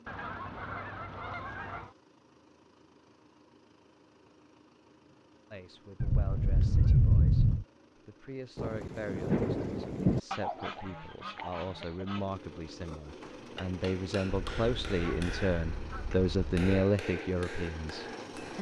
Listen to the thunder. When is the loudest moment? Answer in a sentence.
The volume of the thunder peaks at 10 seconds.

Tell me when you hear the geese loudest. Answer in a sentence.
The volume of the geese peaks at 7 seconds.